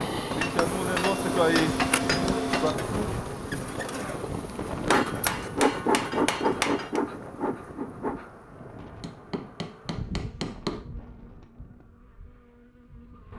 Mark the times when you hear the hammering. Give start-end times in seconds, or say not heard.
0.3-2.8, 4.9-7.0, 9.0-10.8.